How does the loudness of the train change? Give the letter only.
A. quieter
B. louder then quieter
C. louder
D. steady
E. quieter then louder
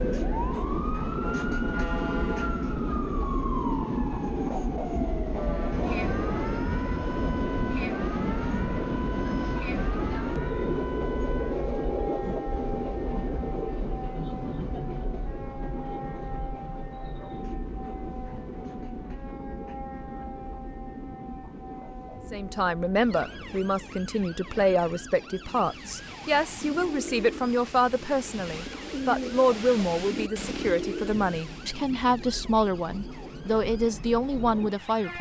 A.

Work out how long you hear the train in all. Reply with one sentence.
You can hear the train for 35 seconds altogether.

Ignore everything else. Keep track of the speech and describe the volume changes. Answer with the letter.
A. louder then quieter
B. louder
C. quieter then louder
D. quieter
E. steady
E.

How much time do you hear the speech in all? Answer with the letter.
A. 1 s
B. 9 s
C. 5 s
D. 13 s
D.